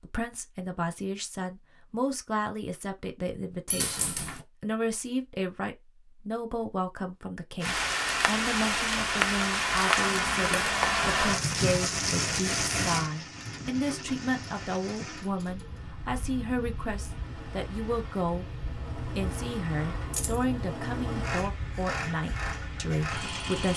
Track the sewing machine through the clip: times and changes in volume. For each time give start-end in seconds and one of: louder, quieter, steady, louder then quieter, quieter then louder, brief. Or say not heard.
13.3-23.7 louder.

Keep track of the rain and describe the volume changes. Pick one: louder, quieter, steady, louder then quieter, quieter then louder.
quieter.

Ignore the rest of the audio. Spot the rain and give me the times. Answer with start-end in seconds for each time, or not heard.
7.6-23.7.